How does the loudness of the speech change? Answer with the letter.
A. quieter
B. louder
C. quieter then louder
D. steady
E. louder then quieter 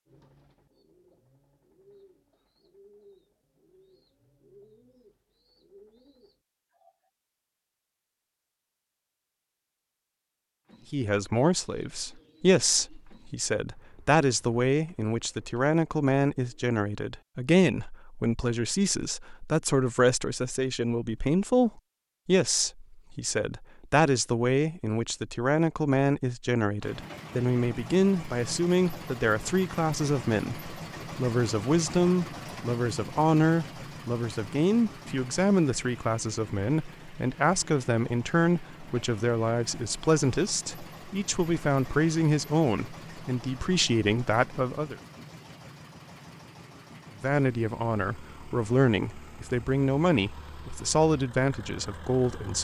D.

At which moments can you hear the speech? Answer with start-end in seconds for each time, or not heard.
10.9-45.0, 47.2-52.5.